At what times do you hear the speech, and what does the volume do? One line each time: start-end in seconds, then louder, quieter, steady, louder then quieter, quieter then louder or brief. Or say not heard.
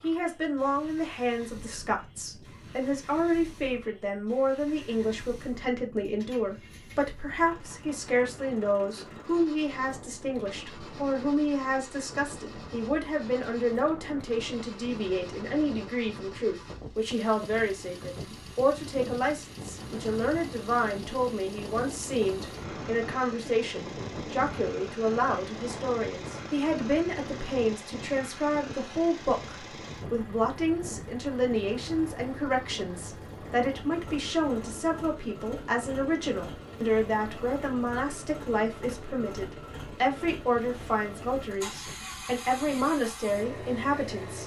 0.0-44.4 steady.